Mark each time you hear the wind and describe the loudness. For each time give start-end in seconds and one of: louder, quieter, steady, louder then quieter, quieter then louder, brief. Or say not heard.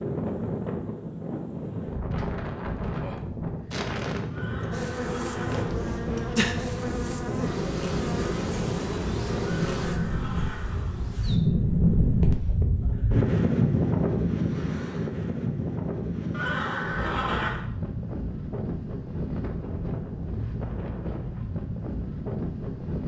0.0-23.0 louder then quieter.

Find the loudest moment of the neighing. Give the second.
17 s.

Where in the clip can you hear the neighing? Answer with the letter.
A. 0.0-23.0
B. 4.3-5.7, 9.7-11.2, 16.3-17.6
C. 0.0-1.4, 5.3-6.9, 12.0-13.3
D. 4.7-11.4
B.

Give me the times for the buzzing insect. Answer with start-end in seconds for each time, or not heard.
4.7-11.4.